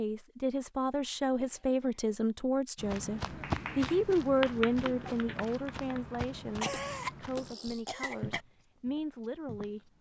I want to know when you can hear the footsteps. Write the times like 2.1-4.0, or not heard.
2.8-9.9.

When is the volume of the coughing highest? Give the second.
7 s.